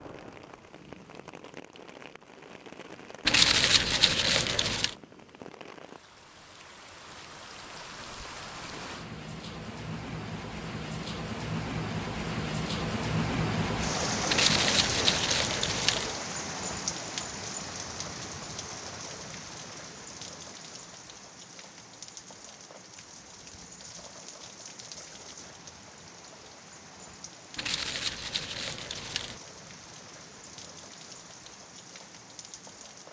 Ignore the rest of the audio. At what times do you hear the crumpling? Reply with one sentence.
The crumpling can be heard from 3.2 to 5.0 s, from 14.2 to 16.1 s and from 27.6 to 29.4 s.